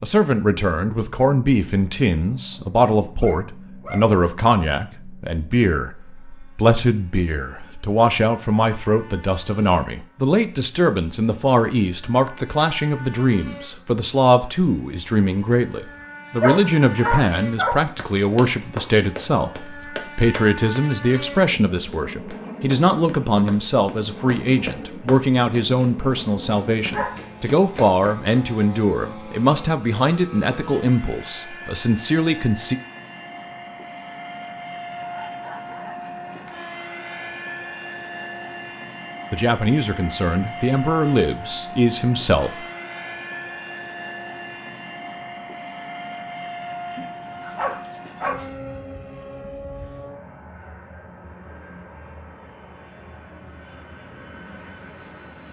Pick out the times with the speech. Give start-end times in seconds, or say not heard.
0.0-32.8, 39.3-42.6.